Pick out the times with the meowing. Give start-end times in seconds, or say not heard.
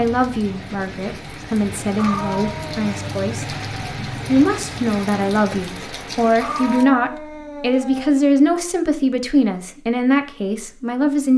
1.9-3.1, 6.4-8.2.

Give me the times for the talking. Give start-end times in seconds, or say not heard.
0.0-3.5, 4.2-11.3.